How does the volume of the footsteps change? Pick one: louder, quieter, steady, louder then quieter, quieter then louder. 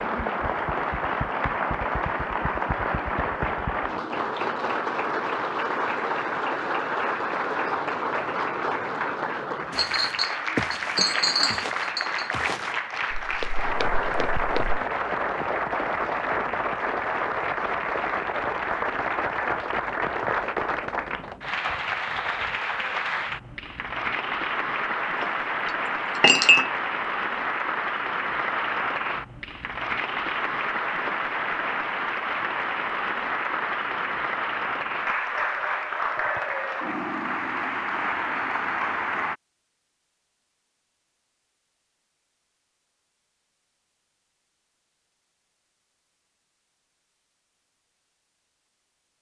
quieter.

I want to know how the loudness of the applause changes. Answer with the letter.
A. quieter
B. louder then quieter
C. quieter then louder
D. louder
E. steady
E.